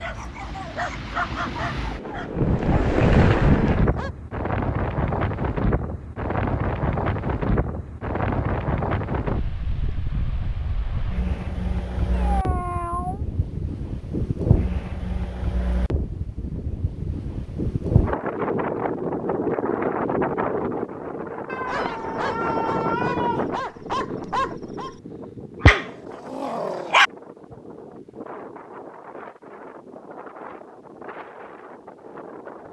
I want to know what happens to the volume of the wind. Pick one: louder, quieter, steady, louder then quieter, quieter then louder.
quieter.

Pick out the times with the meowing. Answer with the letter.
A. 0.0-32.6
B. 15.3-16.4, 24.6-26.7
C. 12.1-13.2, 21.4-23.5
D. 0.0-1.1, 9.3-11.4
C.